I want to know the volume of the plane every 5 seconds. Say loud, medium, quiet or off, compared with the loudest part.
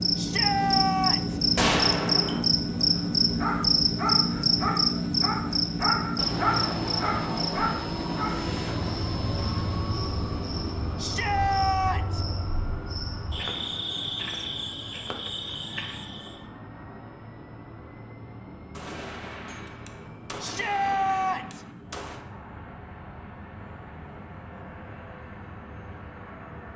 loud, loud, medium, quiet, quiet, quiet.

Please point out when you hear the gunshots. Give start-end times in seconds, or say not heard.
1.6-2.4, 18.8-22.2.